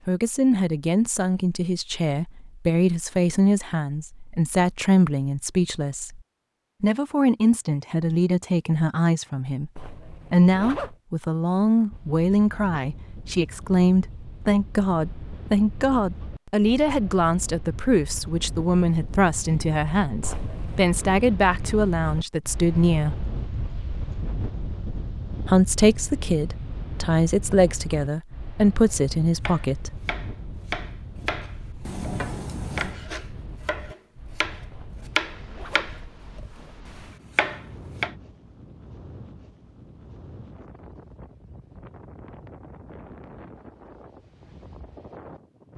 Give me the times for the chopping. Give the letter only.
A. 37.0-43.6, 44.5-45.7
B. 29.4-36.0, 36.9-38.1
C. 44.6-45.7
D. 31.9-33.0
B.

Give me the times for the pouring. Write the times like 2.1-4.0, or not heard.
31.9-33.0.